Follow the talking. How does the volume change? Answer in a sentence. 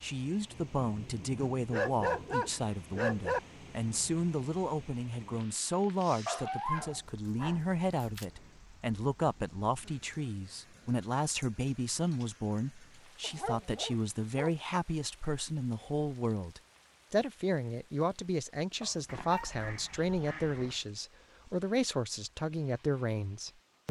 The loudness of the talking stays about the same.